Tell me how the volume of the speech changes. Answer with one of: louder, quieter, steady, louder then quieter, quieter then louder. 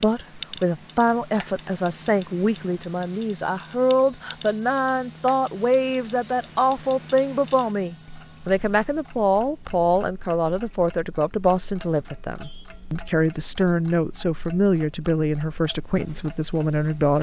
steady.